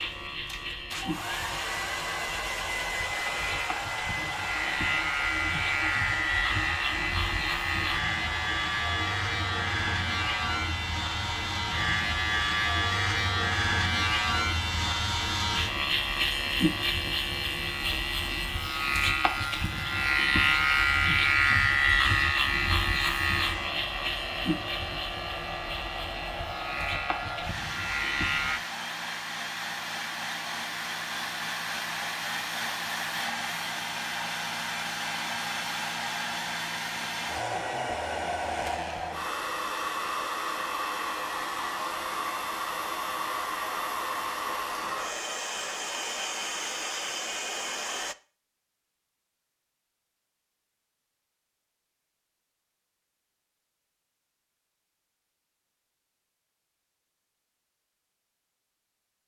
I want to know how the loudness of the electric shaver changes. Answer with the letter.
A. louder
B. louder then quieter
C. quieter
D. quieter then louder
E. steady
B.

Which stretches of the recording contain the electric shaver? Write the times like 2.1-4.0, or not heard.
0.0-28.6.